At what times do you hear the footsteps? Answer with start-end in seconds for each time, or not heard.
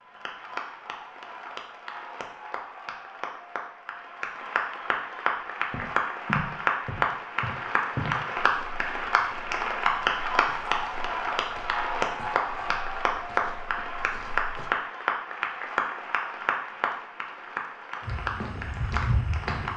5.7-14.7, 18.0-19.7.